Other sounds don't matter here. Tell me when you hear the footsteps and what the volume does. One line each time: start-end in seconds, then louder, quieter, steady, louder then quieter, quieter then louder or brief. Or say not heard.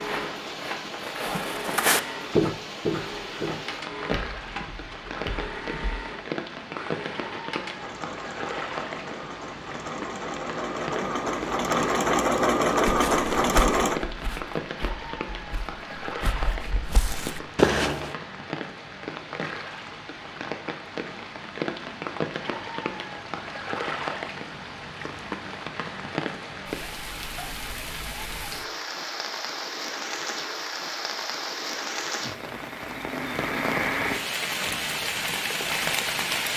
0.0-6.0 louder then quieter
12.8-18.1 quieter then louder.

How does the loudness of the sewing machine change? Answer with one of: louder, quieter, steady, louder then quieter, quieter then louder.
louder.